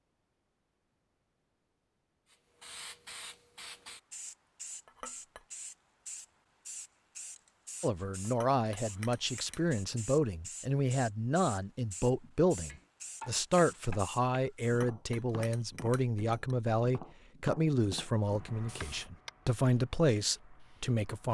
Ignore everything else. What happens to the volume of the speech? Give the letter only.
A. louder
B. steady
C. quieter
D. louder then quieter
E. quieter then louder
B.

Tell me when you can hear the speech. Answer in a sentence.
The speech can be heard from 7.8 to 21.2 s.